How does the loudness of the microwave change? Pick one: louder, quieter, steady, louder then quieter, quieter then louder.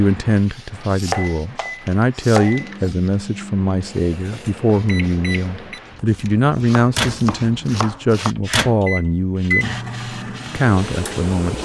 louder.